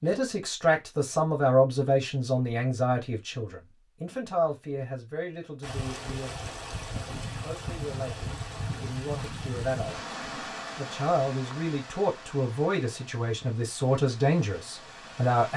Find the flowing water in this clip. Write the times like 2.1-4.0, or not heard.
5.6-15.5.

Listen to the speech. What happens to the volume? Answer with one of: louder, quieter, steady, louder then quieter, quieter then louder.
quieter then louder.